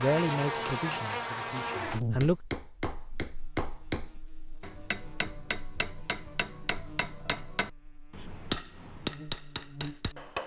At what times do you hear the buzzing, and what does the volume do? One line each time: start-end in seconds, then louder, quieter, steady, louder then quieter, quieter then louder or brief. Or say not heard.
0.0-10.4 quieter then louder.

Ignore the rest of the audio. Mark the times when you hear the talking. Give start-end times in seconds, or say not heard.
0.0-2.4.